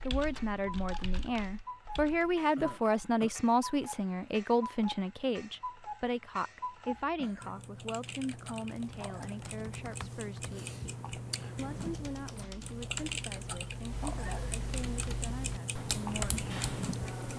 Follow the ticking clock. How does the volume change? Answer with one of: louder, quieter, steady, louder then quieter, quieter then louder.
louder.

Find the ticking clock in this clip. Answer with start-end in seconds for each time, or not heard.
0.0-17.3.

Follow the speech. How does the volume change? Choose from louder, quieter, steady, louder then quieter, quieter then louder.
quieter.